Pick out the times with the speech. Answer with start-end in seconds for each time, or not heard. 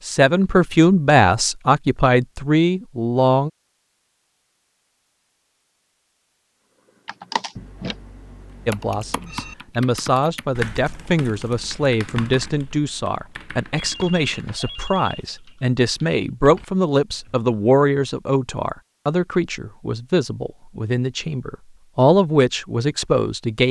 0.0-3.5, 8.7-23.6.